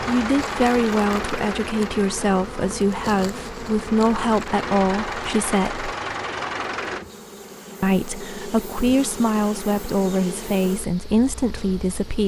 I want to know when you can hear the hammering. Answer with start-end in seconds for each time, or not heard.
not heard.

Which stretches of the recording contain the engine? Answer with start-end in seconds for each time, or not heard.
0.0-7.0.